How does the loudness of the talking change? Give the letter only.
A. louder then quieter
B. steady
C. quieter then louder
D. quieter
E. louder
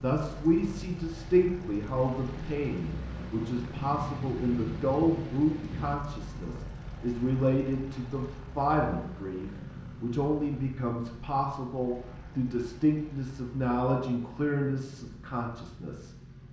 B.